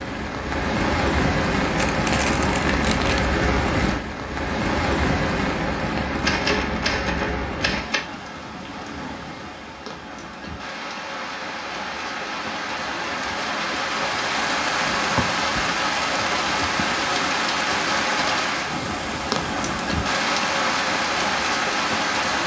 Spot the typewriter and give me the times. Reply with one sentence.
The typewriter can be heard from 6.2 to 8.0 s.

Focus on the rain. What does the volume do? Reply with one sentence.
The volume of the rain goes down, then up.